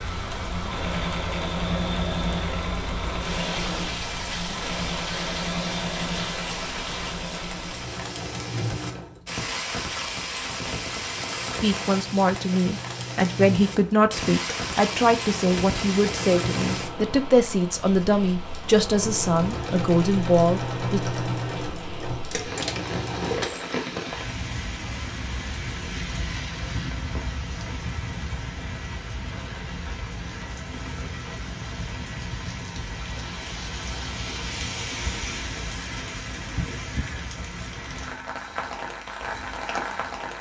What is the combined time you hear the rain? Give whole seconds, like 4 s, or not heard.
40 s.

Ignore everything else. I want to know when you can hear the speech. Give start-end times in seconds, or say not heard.
11.6-21.0.